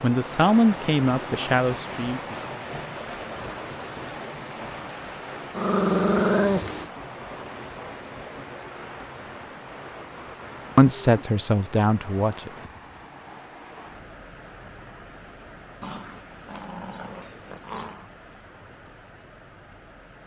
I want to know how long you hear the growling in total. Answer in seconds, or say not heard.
4 s.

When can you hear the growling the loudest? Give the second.
6 s.